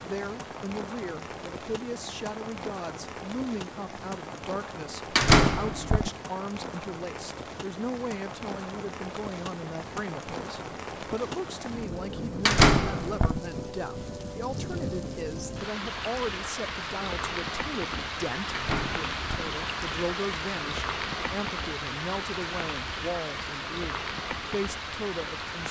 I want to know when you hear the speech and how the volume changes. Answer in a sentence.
You can hear the speech from 0.0 to 25.6 s, at a steady volume.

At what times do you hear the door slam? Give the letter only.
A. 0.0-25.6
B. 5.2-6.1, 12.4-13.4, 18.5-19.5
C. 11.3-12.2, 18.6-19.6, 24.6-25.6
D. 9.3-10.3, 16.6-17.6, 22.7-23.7
B.